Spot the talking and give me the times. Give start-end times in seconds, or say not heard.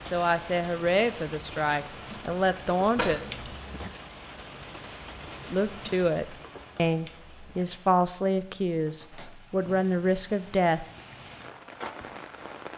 0.0-3.2, 5.5-10.8.